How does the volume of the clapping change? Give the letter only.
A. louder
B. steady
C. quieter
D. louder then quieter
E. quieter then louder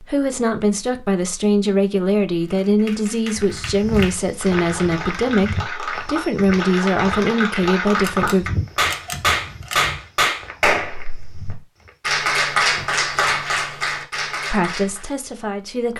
A.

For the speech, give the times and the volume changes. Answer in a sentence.
You can hear the speech from 0.0 to 8.4 s, at a steady volume; and briefly from 14.5 to 15.9 s.